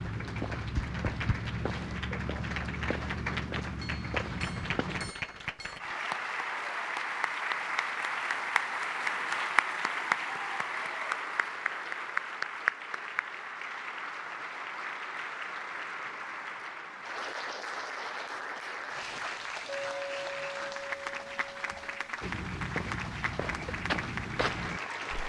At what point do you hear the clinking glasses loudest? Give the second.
20 s.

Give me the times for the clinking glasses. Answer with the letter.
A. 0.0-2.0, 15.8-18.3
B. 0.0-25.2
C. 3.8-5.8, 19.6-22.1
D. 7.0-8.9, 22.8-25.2
C.